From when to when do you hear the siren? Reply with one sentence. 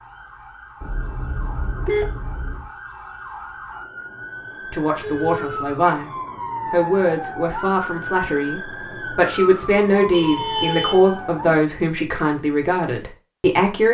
The siren can be heard from 0.0 to 11.7 s.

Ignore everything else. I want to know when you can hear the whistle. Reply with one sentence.
The whistle can't be heard in this clip.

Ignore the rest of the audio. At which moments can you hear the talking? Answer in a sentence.
The talking can be heard from 4.7 to 6.1 s and from 6.7 to 13.8 s.